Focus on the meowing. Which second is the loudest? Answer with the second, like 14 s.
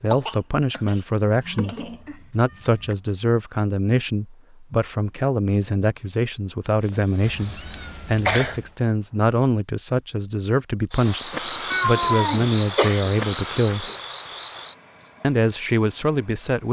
12 s.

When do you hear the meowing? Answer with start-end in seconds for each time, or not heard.
1.3-3.0, 7.2-8.7, 11.7-12.5.